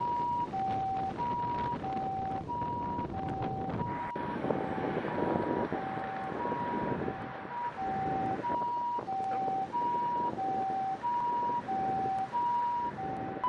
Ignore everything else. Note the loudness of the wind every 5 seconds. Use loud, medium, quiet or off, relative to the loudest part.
loud, loud, medium.